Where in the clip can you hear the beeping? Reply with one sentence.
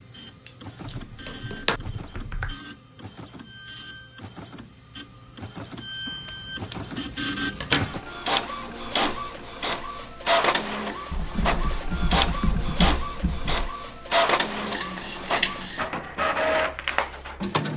You can't hear the beeping here.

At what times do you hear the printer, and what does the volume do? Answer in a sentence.
The printer can be heard from 0.0 to 17.7 s, getting louder.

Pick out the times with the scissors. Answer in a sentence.
You can hear the scissors from 0.5 to 1.8 s, from 6.0 to 8.0 s and from 14.6 to 15.9 s.